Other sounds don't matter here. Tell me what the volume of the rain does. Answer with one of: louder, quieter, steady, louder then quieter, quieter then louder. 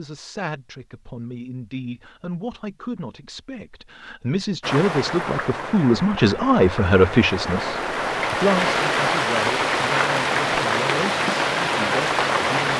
louder.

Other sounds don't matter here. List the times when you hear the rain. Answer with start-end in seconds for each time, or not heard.
4.6-12.7.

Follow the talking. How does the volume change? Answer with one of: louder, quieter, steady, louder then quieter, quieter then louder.
louder then quieter.